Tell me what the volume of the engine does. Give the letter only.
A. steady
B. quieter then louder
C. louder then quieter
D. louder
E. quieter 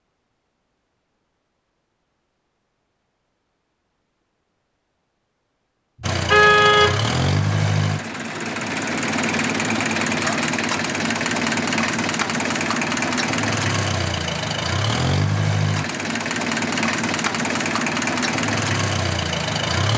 A.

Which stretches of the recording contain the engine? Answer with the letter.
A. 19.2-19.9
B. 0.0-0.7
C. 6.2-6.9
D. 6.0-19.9
D.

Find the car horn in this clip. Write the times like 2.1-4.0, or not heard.
6.2-6.9.